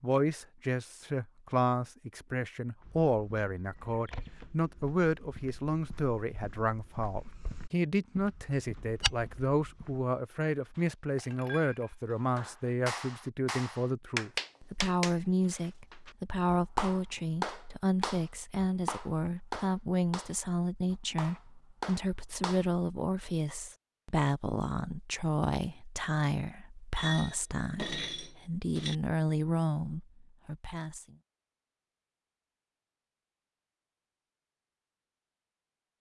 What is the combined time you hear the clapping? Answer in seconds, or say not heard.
11 s.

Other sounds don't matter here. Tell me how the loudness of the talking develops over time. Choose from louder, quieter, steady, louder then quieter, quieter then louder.
steady.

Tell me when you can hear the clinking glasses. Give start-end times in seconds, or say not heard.
10.8-12.8, 26.9-28.9.